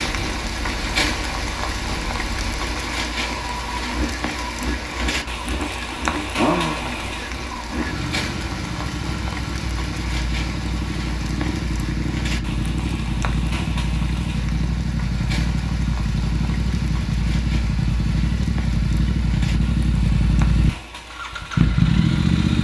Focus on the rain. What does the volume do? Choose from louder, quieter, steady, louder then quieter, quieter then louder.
quieter.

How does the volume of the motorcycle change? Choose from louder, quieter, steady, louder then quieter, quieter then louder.
louder.